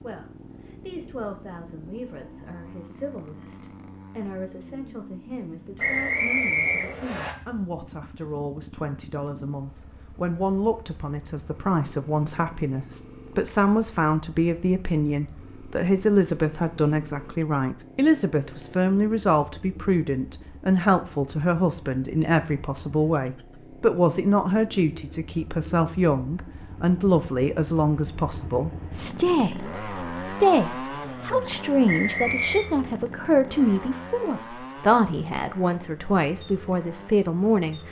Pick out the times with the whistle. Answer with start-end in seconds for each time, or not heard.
5.8-7.3, 31.9-32.6.